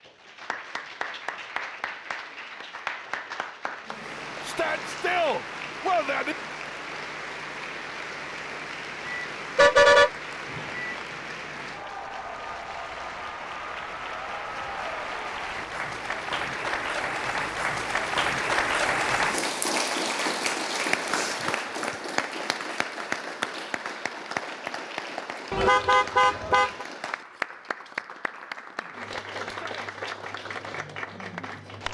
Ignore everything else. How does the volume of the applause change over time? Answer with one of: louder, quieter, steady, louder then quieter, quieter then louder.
louder then quieter.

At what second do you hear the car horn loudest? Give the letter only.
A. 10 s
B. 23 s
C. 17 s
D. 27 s
A.